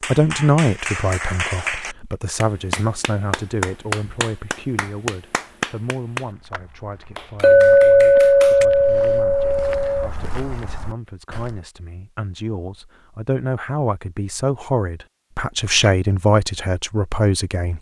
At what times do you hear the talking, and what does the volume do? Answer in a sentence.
The talking can be heard from 0.1 to 17.7 s, getting quieter then louder.